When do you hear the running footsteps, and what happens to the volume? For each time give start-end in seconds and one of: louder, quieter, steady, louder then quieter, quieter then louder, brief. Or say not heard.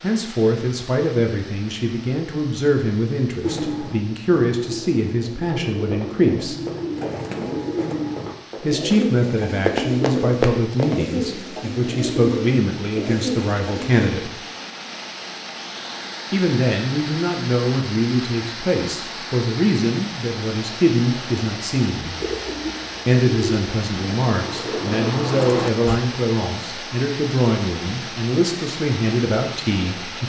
5.4-10.9 louder.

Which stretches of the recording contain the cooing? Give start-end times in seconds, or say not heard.
3.4-13.9, 22.2-26.0.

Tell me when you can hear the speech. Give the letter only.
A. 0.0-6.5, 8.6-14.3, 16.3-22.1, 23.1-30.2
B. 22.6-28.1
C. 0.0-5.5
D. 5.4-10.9
A.